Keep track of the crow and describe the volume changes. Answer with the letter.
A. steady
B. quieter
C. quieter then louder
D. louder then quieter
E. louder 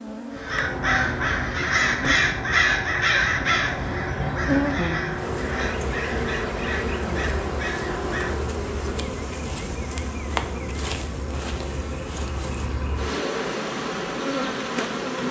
B.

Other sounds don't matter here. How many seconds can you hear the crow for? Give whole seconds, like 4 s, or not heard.
8 s.